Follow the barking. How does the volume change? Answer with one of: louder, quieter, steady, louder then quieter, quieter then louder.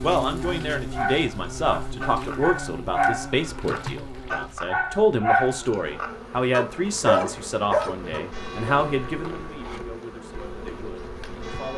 louder.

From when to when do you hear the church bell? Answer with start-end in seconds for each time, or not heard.
8.3-11.7.